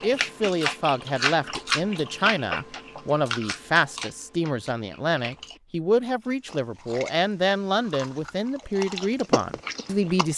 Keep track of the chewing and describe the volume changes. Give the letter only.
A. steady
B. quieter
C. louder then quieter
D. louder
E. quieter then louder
E.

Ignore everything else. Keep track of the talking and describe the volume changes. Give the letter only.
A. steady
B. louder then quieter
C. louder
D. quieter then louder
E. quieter
A.